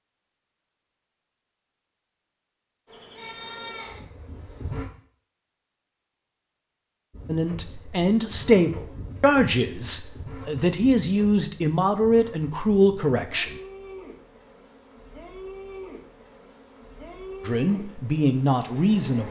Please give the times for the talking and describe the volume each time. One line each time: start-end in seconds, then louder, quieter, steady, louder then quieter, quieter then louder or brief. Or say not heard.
7.2-13.6 steady
17.4-19.2 brief.